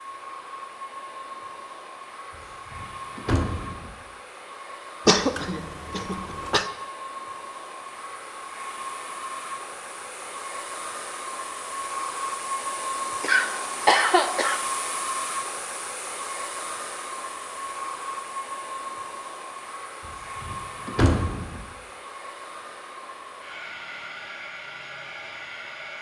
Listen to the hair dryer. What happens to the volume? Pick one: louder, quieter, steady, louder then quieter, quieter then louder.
louder then quieter.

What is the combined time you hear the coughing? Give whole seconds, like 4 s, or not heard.
3 s.